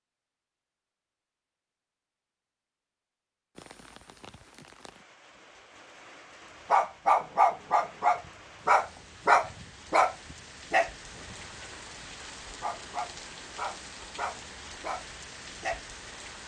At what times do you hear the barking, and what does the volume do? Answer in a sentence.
The barking can be heard from 6.7 to 15.8 s, getting quieter.